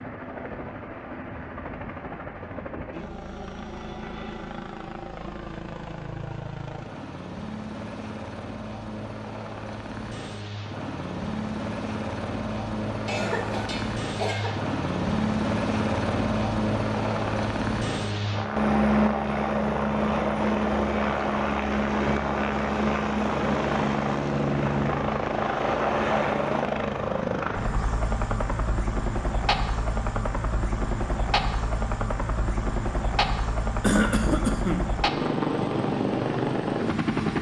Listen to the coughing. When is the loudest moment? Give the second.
34 s.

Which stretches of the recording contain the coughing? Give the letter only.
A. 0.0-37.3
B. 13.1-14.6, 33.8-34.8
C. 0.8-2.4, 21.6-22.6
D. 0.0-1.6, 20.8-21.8
B.